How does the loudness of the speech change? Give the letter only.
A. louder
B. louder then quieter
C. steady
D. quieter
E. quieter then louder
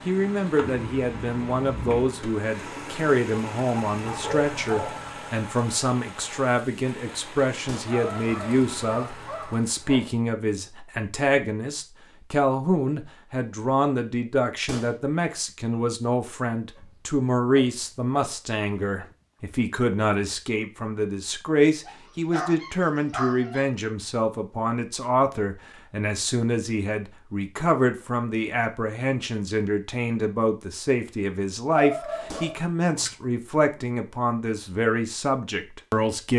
C.